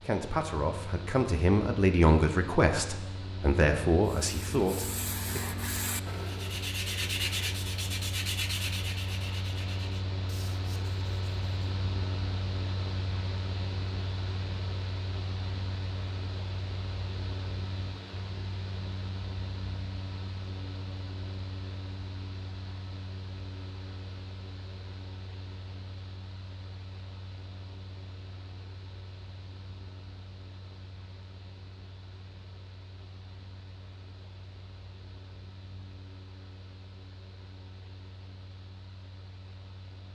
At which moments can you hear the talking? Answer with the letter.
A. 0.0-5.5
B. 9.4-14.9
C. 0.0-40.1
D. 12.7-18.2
A.